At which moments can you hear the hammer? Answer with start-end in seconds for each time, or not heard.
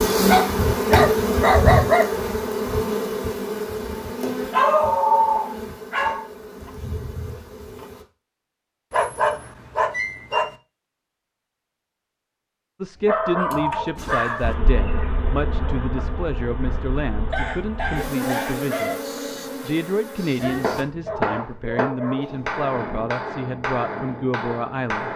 20.4-25.1.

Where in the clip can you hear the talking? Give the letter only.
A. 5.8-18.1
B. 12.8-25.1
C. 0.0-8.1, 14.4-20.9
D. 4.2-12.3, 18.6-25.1
B.